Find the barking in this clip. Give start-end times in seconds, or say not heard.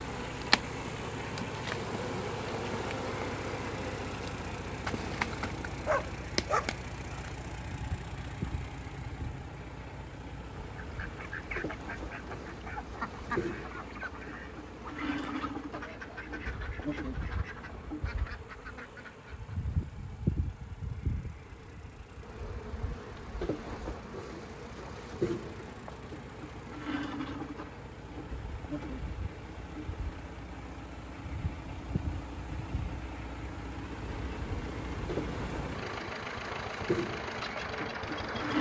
5.8-7.2.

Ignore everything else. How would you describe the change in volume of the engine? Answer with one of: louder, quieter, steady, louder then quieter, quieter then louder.
quieter then louder.